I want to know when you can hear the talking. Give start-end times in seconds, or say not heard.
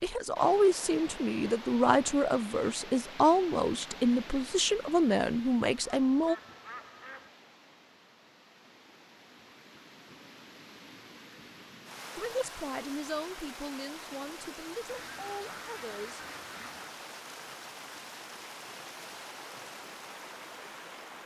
0.0-6.3, 12.2-16.2.